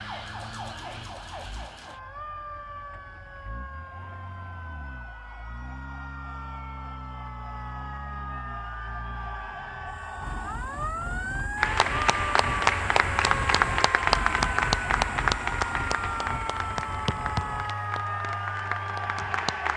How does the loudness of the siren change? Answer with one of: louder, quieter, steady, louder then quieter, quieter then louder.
louder.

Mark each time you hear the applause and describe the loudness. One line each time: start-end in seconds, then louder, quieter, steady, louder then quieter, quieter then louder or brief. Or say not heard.
11.6-19.7 quieter.